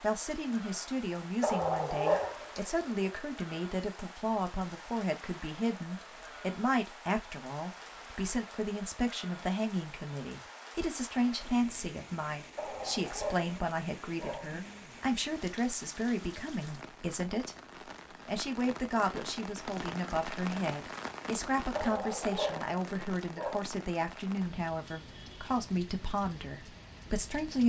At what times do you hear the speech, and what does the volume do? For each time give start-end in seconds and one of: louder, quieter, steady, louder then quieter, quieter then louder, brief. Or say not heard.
0.0-17.6 steady
18.2-27.6 steady.